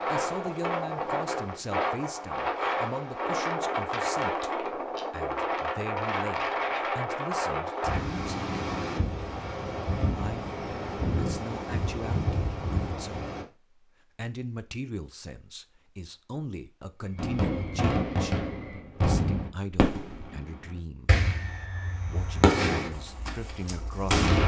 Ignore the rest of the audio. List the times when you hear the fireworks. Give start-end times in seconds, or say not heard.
17.1-24.4.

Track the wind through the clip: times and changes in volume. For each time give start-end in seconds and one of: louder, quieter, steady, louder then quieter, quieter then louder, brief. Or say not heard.
0.0-13.4 steady.